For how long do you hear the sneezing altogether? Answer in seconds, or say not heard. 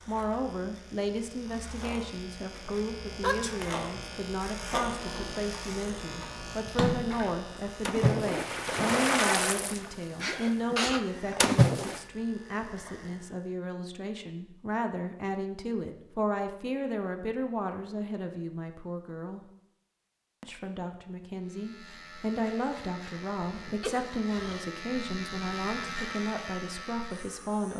3 s.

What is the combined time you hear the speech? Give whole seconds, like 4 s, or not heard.
27 s.